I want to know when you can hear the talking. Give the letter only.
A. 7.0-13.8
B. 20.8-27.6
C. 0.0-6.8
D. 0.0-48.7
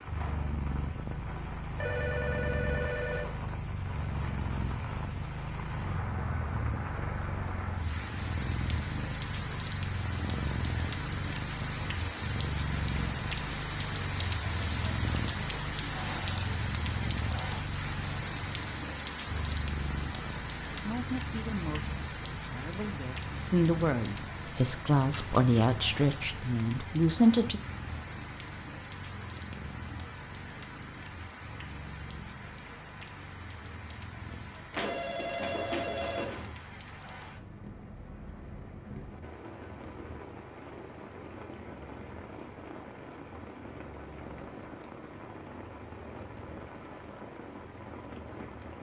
B.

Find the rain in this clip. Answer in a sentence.
The rain can be heard from 0.0 to 48.7 s.